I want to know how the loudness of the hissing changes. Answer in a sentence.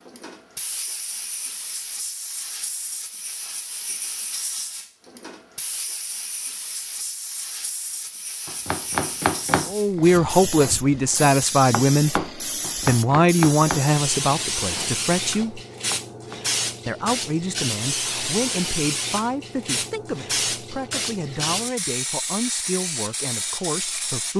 The volume of the hissing goes up.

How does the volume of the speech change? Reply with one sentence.
The volume of the speech goes down.